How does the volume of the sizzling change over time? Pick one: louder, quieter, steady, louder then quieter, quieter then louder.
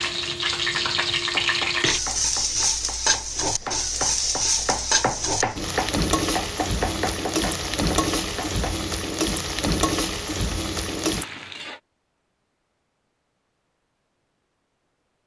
steady.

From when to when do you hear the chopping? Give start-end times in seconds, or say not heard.
0.9-8.8.